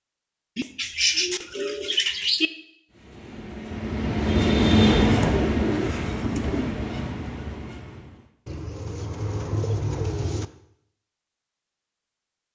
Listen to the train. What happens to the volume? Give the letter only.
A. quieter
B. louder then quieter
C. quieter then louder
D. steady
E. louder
B.